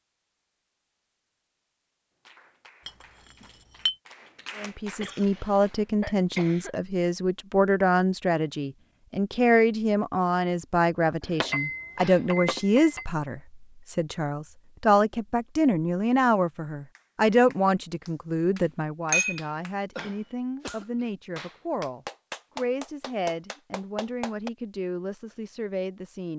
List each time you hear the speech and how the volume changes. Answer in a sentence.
You can hear the speech from 4.5 to 26.3 s, getting quieter.